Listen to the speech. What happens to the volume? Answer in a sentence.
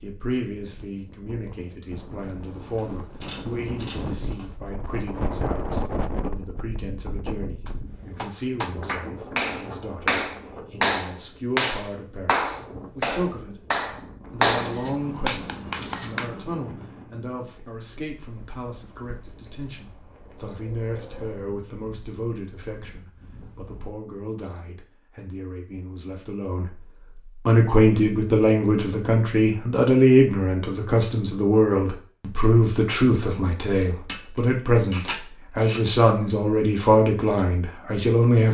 The volume of the speech goes up.